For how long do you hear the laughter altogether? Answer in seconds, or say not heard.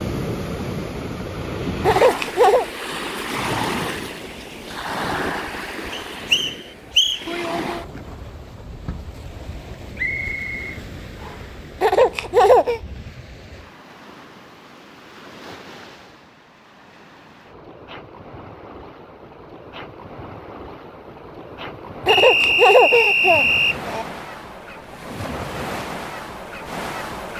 4 s.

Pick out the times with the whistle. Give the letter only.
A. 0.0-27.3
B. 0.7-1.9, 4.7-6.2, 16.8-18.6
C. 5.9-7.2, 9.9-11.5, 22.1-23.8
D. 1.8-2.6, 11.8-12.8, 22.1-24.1
C.